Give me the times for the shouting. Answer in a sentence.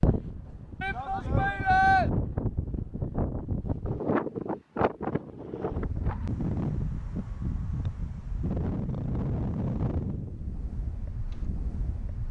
The shouting can be heard from 0.8 to 2.1 s.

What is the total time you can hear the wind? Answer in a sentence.
You can hear the wind for 12 seconds altogether.